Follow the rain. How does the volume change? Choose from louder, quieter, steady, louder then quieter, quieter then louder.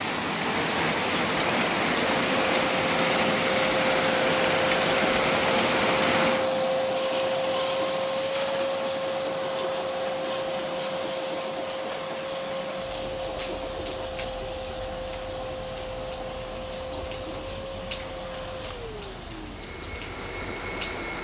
quieter.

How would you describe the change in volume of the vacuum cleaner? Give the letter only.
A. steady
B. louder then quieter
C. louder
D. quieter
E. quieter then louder
D.